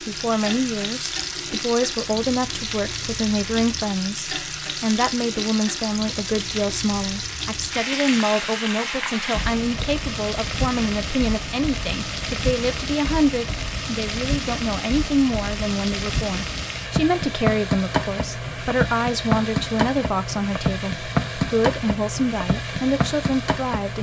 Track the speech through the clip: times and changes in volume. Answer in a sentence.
The speech can be heard from 0.1 to 23.9 s, at a steady volume.